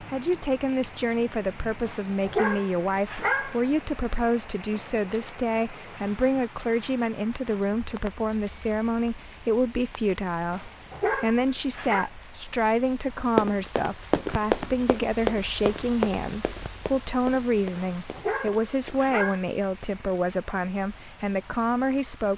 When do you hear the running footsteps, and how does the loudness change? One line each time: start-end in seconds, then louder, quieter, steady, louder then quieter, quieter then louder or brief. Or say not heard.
13.2-19.0 quieter.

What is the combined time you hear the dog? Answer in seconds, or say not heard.
5 s.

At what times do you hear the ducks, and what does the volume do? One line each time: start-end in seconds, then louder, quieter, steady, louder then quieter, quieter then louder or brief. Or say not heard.
not heard.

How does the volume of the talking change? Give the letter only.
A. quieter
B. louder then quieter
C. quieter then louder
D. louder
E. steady
E.